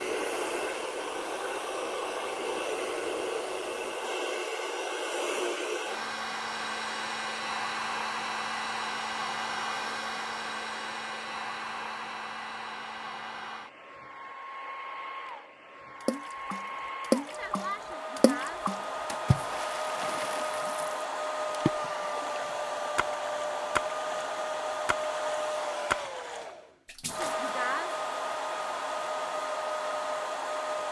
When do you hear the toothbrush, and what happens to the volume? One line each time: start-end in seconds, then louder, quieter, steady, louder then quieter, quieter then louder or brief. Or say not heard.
not heard.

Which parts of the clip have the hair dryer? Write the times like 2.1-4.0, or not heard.
0.0-30.8.